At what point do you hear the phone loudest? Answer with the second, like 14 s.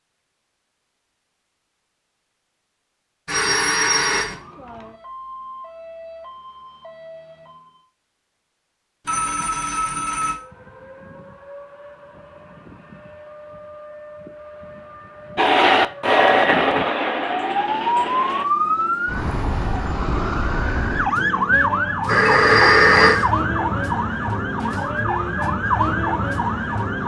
23 s.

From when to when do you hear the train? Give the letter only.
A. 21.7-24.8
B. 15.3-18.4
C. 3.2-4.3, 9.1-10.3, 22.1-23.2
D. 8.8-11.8
B.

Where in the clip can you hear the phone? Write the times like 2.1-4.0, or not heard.
3.2-4.3, 9.1-10.3, 22.1-23.2.